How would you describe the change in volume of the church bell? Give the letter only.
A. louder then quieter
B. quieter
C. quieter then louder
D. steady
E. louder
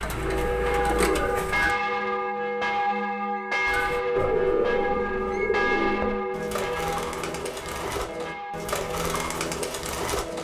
B.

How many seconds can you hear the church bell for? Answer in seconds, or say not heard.
9 s.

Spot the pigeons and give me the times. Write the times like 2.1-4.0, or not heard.
0.0-1.8, 3.6-10.3.